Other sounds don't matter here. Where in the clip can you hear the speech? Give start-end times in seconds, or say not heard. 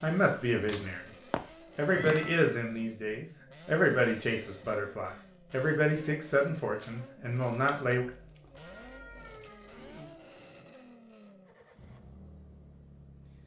0.0-1.1, 1.8-8.1.